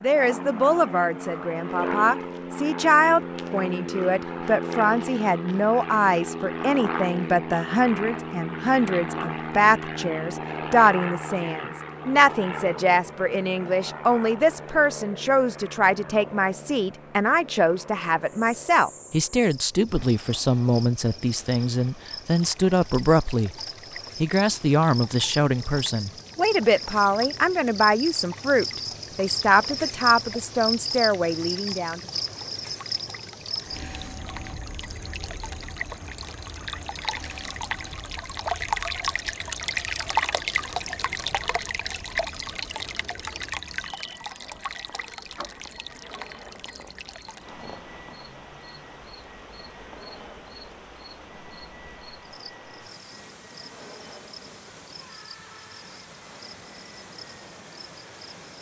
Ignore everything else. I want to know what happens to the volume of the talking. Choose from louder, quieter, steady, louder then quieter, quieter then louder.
steady.